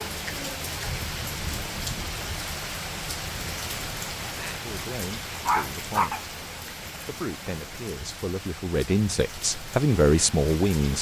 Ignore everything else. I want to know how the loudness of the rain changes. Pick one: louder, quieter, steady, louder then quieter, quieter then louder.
quieter.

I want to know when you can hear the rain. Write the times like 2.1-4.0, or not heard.
0.0-10.9.